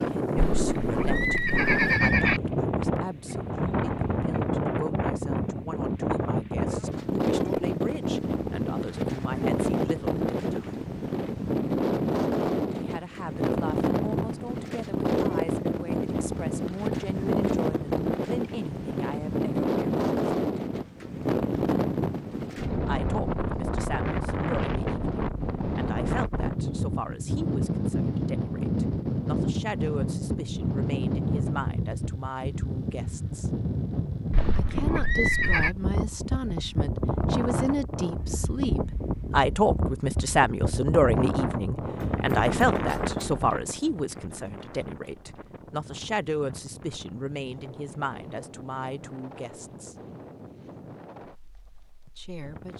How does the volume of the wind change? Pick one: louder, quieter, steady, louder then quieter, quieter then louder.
quieter.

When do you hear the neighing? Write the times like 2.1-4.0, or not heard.
0.3-2.4, 34.3-35.8.